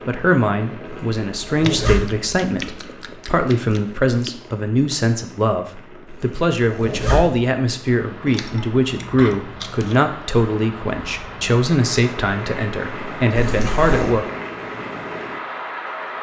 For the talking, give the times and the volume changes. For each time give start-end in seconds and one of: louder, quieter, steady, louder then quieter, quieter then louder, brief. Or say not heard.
0.1-14.2 steady.